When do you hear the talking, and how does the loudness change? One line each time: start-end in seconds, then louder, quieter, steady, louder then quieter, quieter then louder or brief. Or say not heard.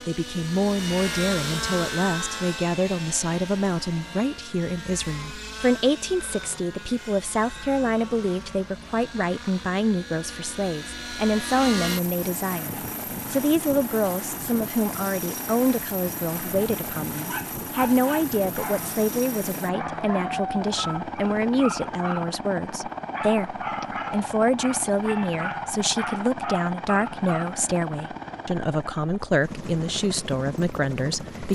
0.1-31.4 steady.